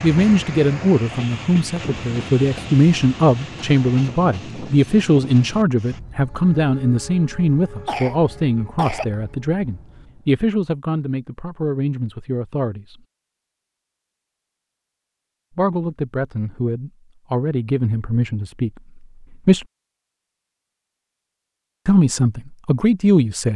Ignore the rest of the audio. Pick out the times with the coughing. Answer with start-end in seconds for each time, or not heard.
7.8-9.2.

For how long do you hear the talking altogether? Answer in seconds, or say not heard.
19 s.